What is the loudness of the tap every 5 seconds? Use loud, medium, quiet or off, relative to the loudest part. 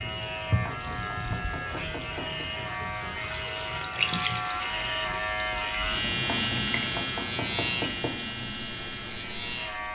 loud, medium.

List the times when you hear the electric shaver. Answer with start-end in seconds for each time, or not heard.
0.0-9.9.